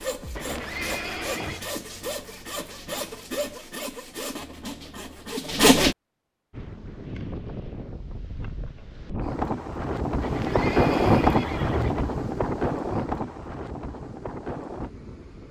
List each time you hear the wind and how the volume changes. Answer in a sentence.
The wind can be heard from 6.5 to 15.4 s, getting louder then quieter.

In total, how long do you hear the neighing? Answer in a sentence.
The neighing can be heard for 3 seconds in total.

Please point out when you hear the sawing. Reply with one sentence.
You can hear the sawing from 0.0 to 6.0 s.